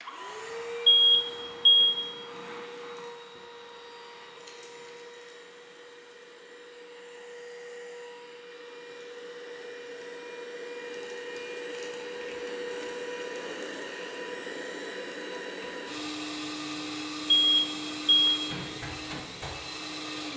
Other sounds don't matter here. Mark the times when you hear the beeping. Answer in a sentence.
The beeping can be heard from 0.8 to 2.0 s and from 17.3 to 18.3 s.